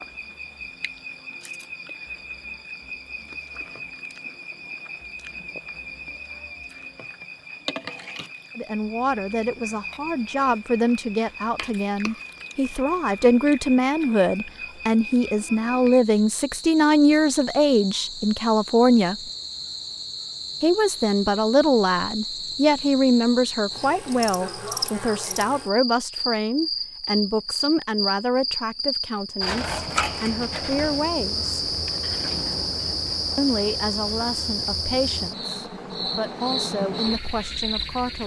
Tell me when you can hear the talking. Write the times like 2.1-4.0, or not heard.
8.6-19.1, 20.6-31.6, 33.4-38.2.